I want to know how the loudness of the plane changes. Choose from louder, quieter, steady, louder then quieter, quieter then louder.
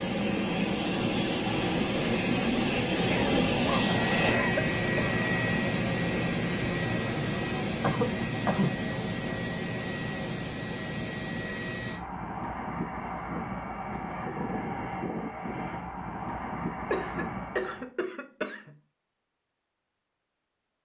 quieter.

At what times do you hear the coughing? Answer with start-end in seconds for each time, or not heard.
3.0-5.2, 7.8-8.8, 16.9-18.7.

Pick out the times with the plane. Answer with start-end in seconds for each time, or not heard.
0.0-17.9.